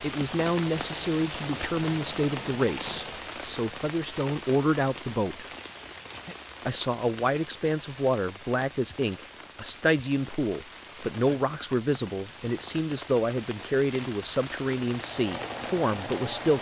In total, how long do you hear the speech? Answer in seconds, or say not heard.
15 s.